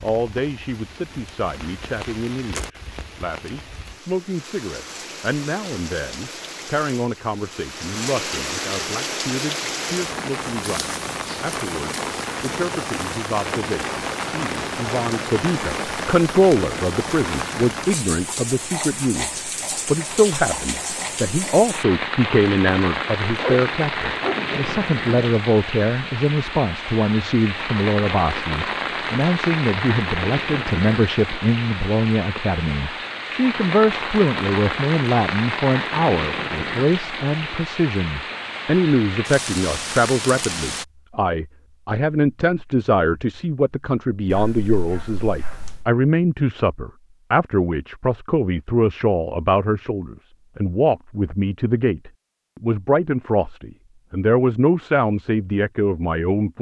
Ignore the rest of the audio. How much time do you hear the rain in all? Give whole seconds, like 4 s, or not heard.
41 s.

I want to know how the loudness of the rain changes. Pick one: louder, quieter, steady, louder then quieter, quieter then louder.
louder.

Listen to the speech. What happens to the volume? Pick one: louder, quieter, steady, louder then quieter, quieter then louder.
louder.